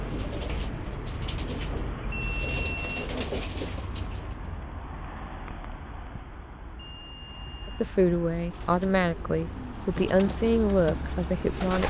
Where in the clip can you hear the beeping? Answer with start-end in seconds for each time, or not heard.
2.1-3.1, 6.8-7.9.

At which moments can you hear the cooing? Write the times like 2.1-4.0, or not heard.
0.0-4.5, 8.4-11.8.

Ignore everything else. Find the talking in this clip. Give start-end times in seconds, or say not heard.
7.7-11.8.